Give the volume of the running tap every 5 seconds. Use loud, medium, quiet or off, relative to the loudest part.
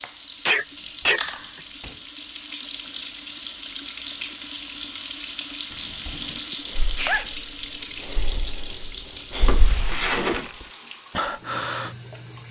loud, loud, medium.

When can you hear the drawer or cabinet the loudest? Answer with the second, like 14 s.
10 s.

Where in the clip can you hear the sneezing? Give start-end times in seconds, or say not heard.
0.5-1.2, 6.5-7.3.